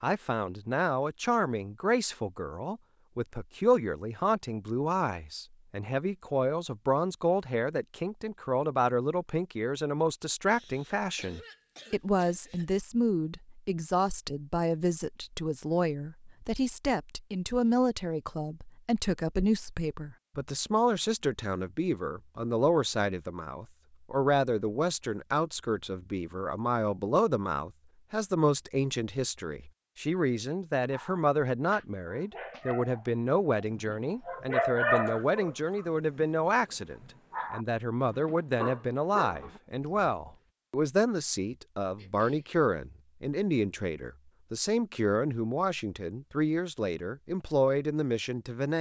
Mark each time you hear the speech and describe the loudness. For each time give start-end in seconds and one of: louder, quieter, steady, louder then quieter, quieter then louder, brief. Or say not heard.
0.0-48.7 steady.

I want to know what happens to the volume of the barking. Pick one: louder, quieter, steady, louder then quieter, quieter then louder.
louder then quieter.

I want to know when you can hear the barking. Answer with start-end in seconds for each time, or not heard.
30.9-36.2, 37.3-40.4.